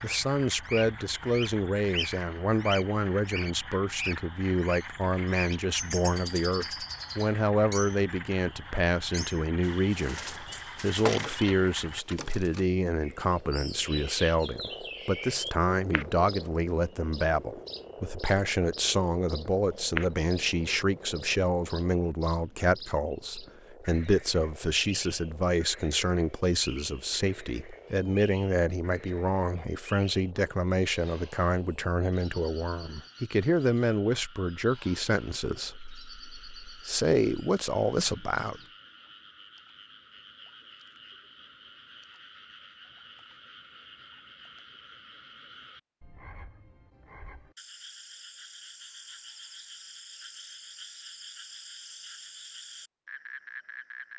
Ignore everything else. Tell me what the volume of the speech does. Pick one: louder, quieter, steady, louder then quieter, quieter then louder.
steady.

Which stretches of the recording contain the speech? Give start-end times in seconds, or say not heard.
0.0-38.6.